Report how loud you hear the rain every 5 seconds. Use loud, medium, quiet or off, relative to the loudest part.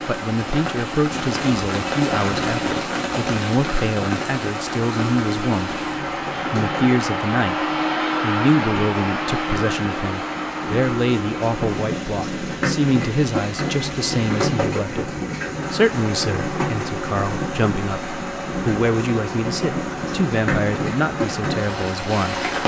loud, medium, loud, loud, loud.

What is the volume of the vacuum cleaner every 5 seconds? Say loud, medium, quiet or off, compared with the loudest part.
medium, loud, medium, medium, medium.